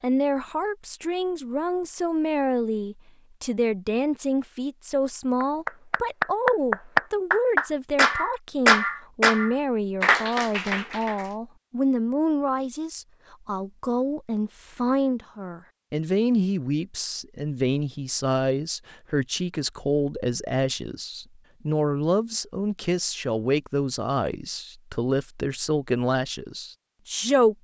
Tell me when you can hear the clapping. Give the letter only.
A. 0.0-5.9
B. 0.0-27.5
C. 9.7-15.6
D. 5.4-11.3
D.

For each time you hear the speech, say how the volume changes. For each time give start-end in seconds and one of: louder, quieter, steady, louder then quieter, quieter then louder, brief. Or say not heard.
0.0-27.5 steady.